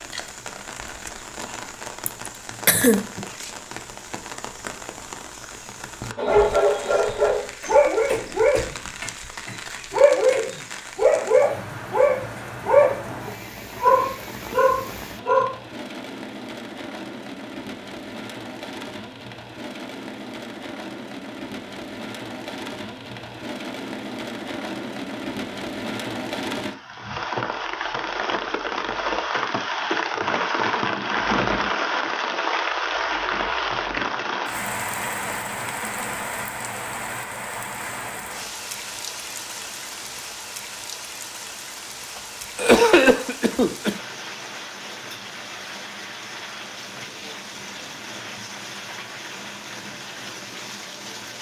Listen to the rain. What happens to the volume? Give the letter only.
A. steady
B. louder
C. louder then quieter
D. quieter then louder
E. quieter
C.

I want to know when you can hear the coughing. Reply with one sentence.
You can hear the coughing from 2.0 to 3.2 s and from 42.1 to 44.0 s.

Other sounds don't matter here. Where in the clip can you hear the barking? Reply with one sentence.
The barking can be heard from 6.2 to 15.5 s.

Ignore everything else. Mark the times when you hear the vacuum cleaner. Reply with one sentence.
You can't hear the vacuum cleaner here.